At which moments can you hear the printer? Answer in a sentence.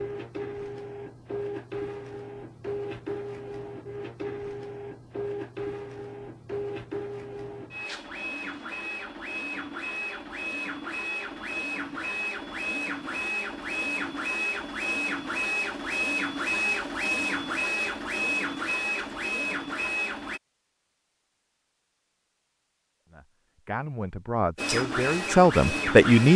You can hear the printer from 0.0 to 20.4 s and from 24.6 to 26.3 s.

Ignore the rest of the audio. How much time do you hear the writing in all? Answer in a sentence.
You can't hear the writing here.